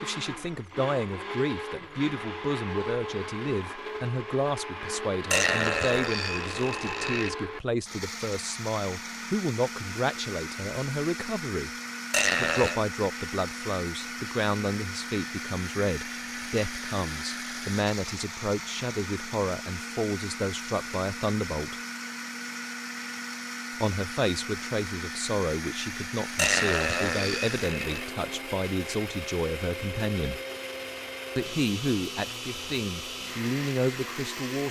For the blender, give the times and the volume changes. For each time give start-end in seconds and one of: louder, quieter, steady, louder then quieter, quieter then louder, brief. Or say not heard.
0.0-34.6 steady.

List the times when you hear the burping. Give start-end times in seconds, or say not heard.
5.3-7.3, 12.1-12.8, 26.4-28.1.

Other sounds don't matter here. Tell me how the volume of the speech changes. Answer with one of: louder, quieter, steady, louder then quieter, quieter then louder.
steady.